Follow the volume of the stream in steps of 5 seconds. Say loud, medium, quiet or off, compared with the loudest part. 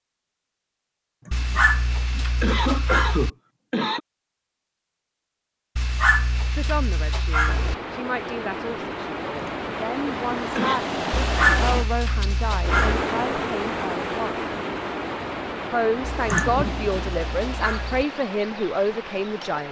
off, loud, loud, medium.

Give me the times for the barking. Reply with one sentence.
The barking can be heard from 1.3 to 3.3 s, from 5.8 to 7.8 s, from 11.1 to 13.1 s and from 16.0 to 18.1 s.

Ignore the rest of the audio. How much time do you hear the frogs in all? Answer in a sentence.
The frogs can't be heard in this clip.